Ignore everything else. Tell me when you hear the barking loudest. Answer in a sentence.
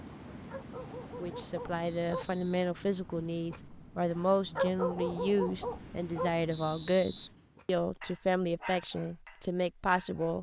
The volume of the barking peaks at 5 seconds.